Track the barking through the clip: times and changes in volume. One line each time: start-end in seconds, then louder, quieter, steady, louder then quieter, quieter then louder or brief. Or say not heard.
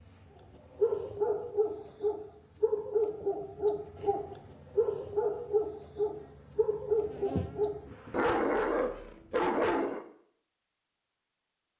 0.8-10.1 steady.